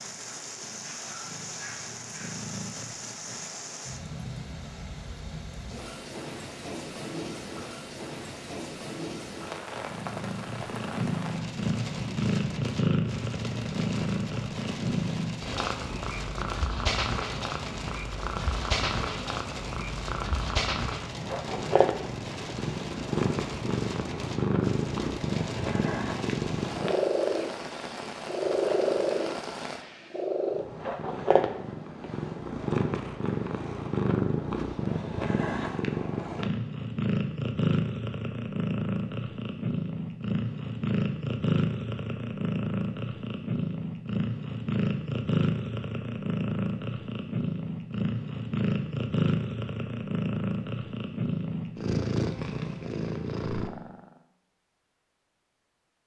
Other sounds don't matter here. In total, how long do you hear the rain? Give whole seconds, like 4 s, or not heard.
30 s.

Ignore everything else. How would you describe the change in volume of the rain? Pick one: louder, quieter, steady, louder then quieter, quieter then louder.
steady.